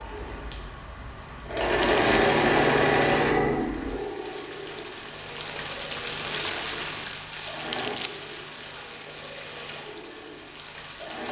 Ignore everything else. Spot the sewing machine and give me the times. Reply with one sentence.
The sewing machine can be heard from 0.0 to 11.2 s.